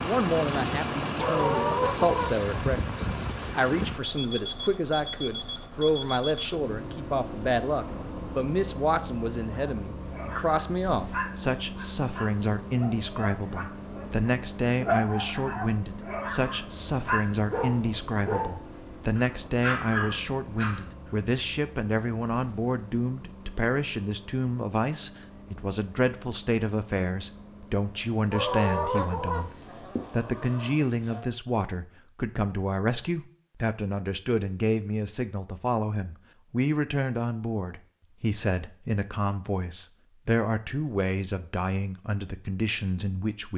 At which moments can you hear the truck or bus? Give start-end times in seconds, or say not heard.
0.0-29.9.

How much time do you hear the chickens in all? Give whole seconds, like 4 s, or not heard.
4 s.